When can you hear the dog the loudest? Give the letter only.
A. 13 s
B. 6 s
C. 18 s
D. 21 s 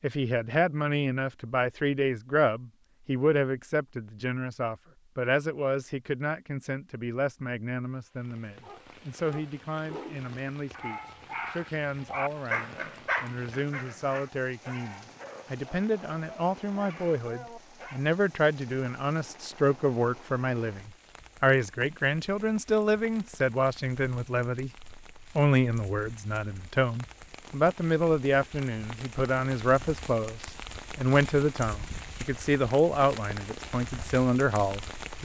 A.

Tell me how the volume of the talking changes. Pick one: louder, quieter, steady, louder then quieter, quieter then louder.
quieter then louder.